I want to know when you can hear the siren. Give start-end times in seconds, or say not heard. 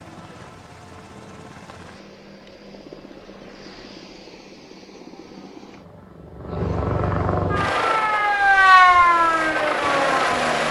7.5-10.6.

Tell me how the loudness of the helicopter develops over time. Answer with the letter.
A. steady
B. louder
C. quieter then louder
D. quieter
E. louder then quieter
B.